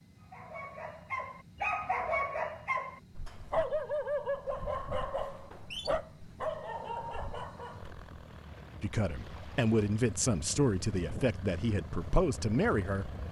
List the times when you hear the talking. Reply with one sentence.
You can hear the talking from 8.8 to 13.2 s.